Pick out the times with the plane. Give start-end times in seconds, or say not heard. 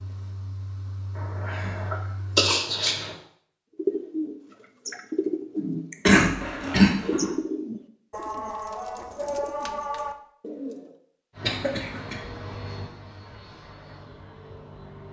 0.0-2.5, 11.3-15.0.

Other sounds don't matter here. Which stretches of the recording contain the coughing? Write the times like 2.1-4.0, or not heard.
1.4-3.1, 6.0-7.3, 11.4-12.2.